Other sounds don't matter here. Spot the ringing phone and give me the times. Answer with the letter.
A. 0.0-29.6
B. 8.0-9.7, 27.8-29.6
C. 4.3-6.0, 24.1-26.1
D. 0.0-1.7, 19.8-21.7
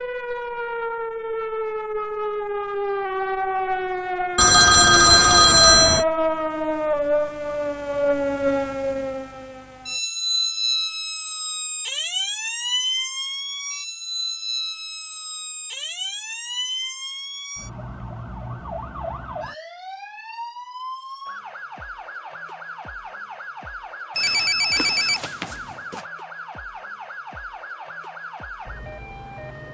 C.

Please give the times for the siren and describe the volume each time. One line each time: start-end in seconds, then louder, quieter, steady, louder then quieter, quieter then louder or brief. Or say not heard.
0.0-29.6 quieter.